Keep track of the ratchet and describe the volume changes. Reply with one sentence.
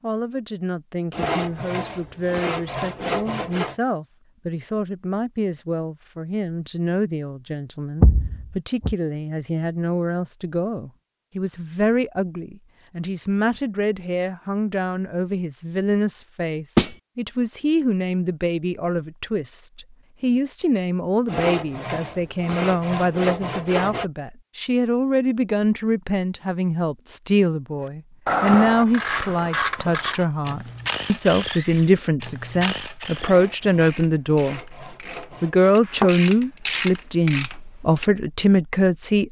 The volume of the ratchet goes down, then up.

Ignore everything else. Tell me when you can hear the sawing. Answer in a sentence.
You can hear the sawing from 1.1 to 3.8 s, from 21.2 to 24.1 s and from 33.1 to 35.8 s.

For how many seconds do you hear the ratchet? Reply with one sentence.
You can hear the ratchet for 10 seconds altogether.